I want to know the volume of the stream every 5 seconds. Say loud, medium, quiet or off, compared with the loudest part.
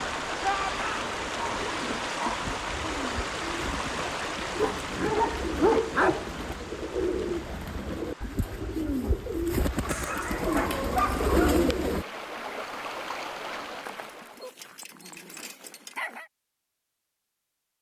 loud, medium, medium, off.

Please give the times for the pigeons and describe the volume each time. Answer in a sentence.
The pigeons can be heard from 1.0 to 12.1 s, getting louder.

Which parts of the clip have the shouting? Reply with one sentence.
You can hear the shouting from 0.4 to 1.1 s.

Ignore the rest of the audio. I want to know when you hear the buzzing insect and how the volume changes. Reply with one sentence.
The buzzing insect can't be heard in this clip.